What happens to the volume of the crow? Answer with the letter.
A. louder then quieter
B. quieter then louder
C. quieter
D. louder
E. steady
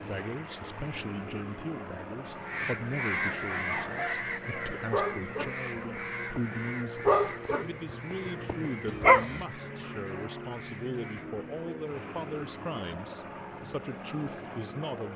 C.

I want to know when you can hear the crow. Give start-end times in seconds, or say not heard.
2.2-11.2.